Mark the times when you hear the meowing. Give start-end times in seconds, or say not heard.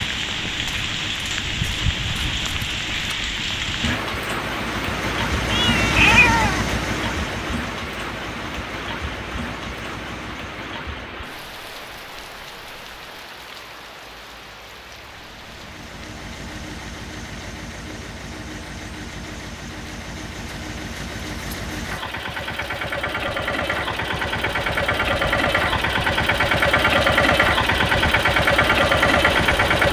5.5-6.7.